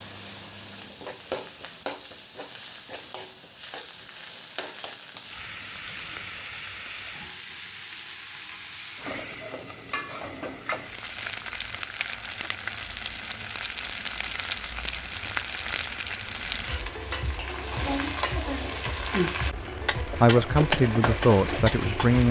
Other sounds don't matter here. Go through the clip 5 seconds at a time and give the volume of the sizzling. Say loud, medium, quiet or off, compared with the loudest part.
medium, medium, medium, loud, loud.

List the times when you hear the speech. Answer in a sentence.
You can hear the speech from 20.0 to 22.2 s.